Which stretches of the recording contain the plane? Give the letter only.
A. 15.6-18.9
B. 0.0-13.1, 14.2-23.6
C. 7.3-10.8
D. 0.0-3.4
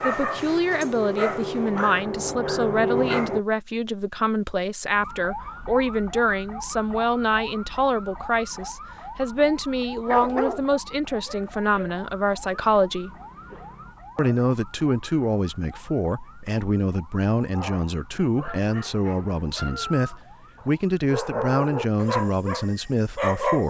D.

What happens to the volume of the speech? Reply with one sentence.
The volume of the speech stays about the same.